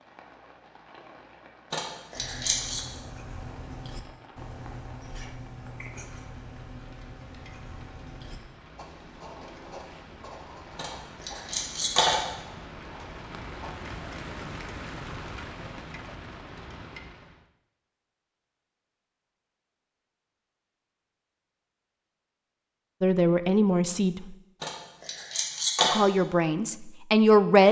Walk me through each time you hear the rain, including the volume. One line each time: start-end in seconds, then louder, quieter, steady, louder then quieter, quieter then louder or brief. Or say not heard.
0.0-17.4 louder.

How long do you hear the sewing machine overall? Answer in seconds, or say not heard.
not heard.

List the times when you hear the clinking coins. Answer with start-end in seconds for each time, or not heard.
1.7-2.9, 10.8-12.2, 24.6-26.0.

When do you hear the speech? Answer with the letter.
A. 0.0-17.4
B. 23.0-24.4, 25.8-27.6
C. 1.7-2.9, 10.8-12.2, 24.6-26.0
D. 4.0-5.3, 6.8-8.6
B.